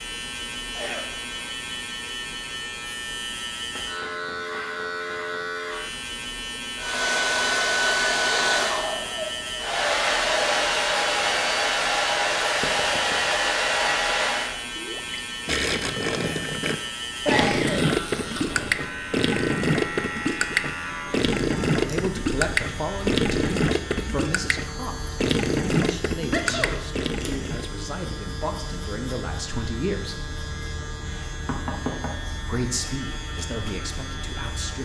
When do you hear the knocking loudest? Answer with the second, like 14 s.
32 s.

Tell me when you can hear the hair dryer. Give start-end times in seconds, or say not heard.
6.8-14.6.